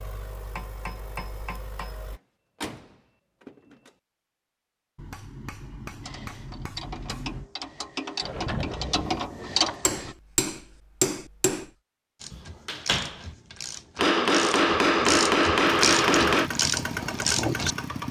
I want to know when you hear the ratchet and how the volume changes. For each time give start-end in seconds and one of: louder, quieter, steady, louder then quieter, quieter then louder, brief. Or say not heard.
6.0-10.2 louder
12.2-18.0 louder.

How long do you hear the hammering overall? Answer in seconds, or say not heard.
8 s.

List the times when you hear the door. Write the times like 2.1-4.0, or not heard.
2.1-3.9, 8.2-9.8, 12.3-13.2.